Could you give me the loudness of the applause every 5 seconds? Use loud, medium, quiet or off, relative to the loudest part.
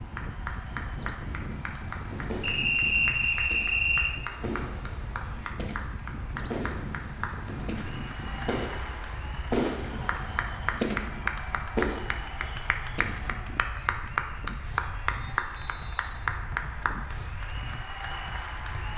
medium, medium, loud, loud.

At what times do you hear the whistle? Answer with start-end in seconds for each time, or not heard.
2.4-4.2, 15.3-16.4.